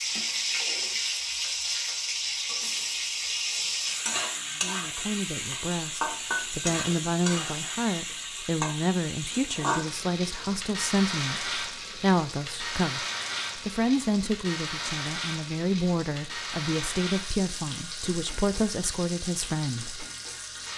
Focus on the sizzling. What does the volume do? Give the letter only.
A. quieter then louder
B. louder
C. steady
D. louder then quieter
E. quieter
E.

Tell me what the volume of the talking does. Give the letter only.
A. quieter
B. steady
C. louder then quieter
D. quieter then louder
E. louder
B.